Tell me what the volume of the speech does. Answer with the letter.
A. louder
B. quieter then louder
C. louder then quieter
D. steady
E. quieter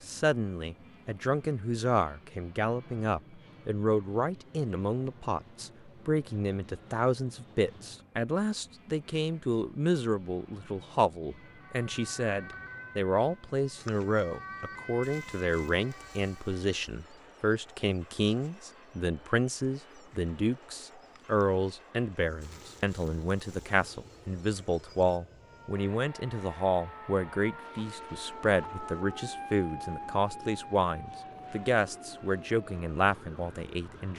D.